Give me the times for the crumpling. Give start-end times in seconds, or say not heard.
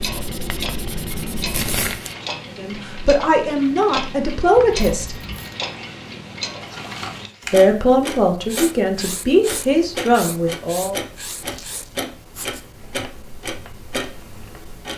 1.5-2.1, 6.6-8.0, 11.4-11.9.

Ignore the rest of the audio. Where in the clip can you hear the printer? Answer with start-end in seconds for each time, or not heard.
not heard.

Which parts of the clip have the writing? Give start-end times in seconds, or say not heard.
0.0-2.0, 8.4-14.8.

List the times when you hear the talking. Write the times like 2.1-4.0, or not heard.
2.5-5.2, 7.5-11.0.